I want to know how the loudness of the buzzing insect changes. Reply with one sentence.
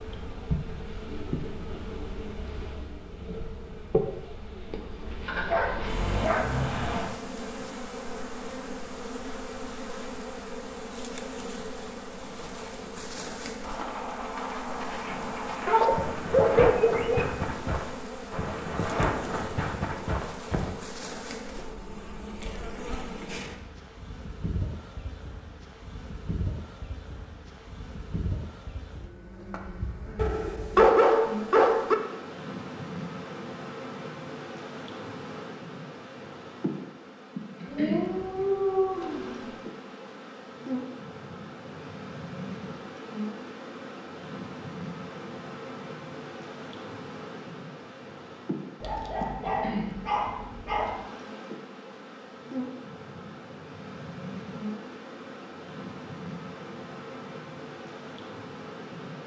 The loudness of the buzzing insect stays about the same.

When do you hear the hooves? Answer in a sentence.
You can hear the hooves from 13.6 to 20.7 s.